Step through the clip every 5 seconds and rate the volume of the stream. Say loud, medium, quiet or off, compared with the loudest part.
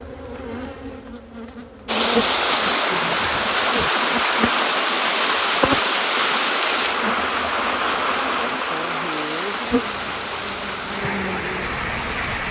loud, loud, medium.